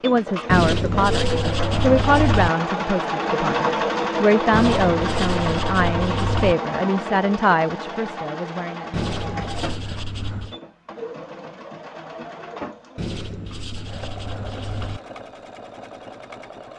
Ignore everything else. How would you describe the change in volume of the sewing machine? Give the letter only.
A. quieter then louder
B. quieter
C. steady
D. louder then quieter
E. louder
B.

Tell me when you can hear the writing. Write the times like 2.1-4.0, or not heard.
0.5-2.5, 4.5-6.5, 8.9-10.6, 12.9-15.0.